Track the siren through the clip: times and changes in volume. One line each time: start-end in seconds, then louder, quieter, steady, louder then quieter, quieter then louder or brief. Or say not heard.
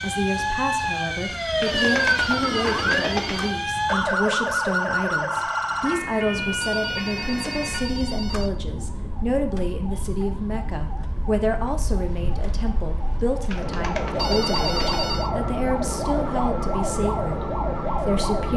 0.0-18.5 quieter then louder.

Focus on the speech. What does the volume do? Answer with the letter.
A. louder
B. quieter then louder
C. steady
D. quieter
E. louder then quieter
C.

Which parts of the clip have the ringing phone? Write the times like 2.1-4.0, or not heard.
1.6-3.5, 6.6-8.6, 14.2-15.3.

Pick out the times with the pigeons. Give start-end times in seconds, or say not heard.
1.6-3.5, 13.5-15.0.